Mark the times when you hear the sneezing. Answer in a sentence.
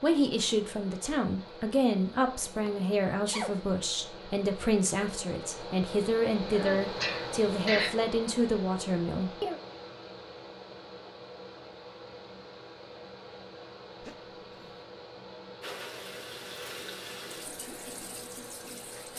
The sneezing can be heard from 2.6 to 3.6 s, from 6.5 to 8.0 s and from 14.0 to 14.8 s.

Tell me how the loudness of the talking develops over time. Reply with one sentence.
The loudness of the talking stays about the same.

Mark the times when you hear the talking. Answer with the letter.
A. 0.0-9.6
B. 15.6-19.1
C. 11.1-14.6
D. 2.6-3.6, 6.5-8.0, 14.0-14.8
A.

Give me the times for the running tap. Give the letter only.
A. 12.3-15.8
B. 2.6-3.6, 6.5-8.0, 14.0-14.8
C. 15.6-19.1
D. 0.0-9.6
C.